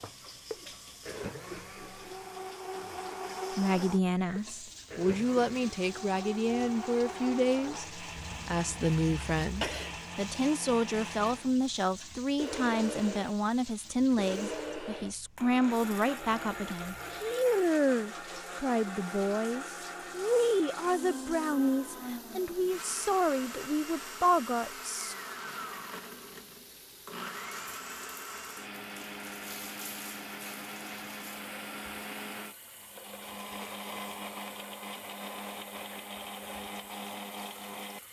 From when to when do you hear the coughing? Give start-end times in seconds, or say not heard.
8.2-10.0.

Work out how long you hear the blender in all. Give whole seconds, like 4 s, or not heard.
38 s.